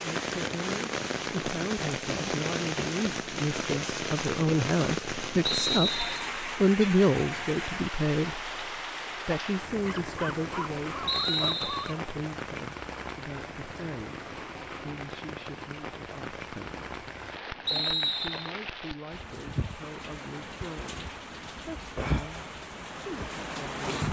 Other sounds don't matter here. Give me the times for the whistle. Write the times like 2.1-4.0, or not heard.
5.4-6.3, 11.1-11.9, 17.6-18.5.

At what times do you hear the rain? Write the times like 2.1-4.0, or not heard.
0.0-24.0.